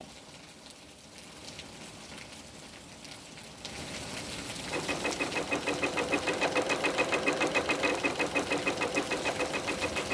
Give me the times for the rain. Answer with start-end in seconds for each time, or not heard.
0.0-10.0.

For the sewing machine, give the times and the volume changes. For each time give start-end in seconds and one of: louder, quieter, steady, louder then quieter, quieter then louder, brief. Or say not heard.
4.7-10.0 steady.